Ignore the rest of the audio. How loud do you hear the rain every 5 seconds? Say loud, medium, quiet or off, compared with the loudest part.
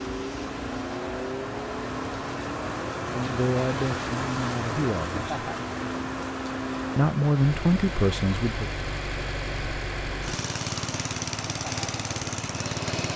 loud, loud, medium.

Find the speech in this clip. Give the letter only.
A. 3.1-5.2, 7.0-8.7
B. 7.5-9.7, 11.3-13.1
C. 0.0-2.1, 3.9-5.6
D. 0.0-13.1
A.